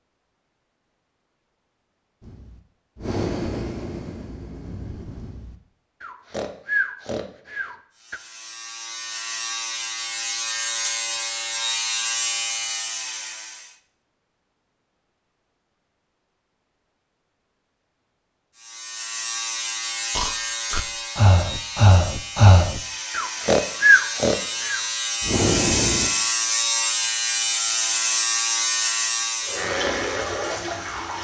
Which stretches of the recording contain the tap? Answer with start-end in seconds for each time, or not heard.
29.4-31.2.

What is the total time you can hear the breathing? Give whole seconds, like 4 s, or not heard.
12 s.